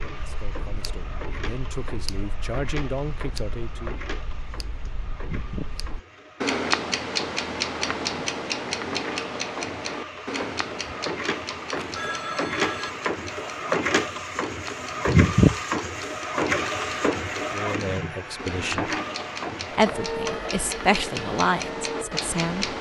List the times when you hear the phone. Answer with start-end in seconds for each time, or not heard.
11.8-12.9.